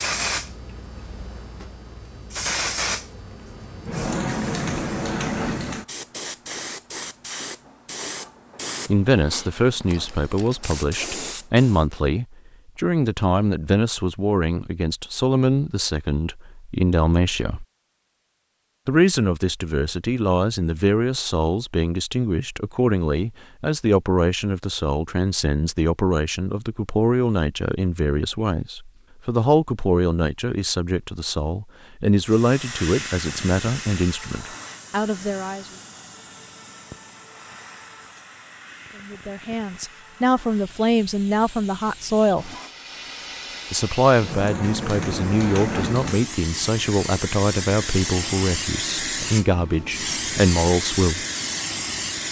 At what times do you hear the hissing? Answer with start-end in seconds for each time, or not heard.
0.0-11.8, 32.2-52.2.